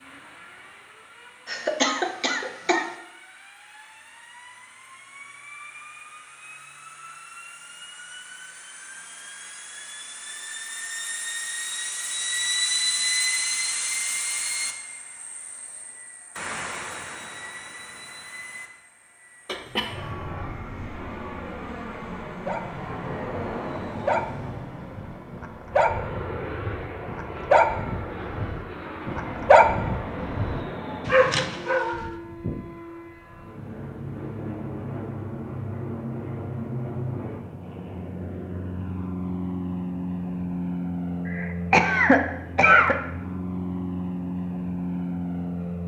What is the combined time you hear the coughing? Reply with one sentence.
You can hear the coughing for 4 seconds altogether.